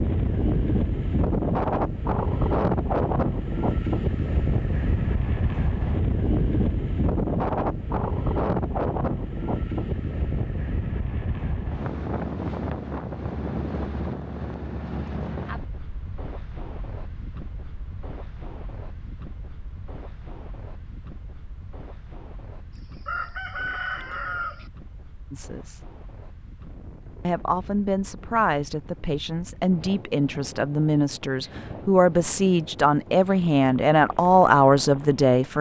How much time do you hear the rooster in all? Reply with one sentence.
The rooster can be heard for 2 seconds in total.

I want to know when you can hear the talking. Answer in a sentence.
You can hear the talking from 25.3 to 25.9 s and from 27.2 to 35.5 s.